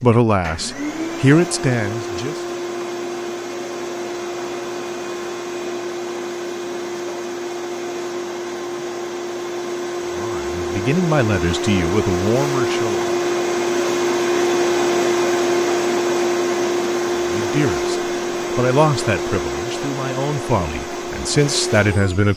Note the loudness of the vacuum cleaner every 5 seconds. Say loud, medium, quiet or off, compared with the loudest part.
medium, medium, loud, loud, medium.